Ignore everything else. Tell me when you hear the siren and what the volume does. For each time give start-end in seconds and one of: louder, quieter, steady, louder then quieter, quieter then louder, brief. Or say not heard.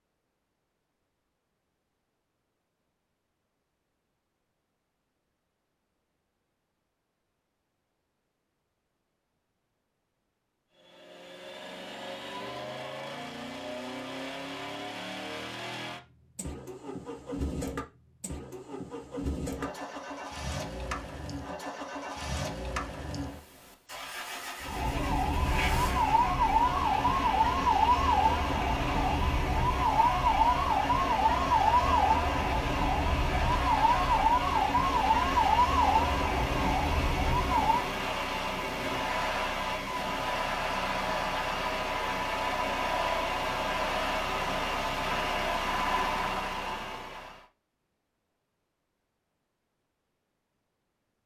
24.6-37.9 steady.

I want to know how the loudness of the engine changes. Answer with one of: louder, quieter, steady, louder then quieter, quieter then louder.
louder.